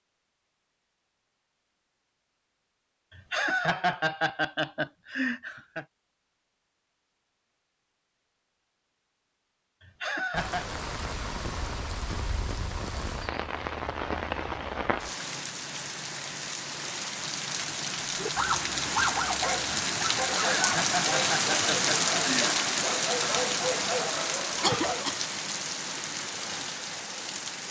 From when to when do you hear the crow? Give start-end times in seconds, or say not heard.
not heard.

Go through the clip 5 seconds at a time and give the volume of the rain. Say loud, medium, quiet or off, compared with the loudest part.
off, off, medium, medium, loud, medium.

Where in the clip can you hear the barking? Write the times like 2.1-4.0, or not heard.
18.2-25.1.